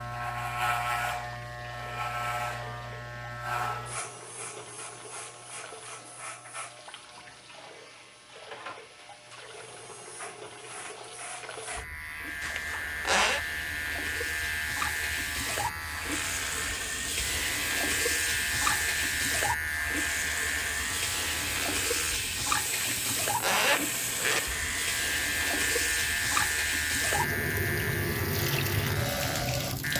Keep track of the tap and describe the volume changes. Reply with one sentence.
The volume of the tap goes up.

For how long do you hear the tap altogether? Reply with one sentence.
You can hear the tap for 30 seconds altogether.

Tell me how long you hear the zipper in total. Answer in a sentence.
You can hear the zipper for 3 seconds altogether.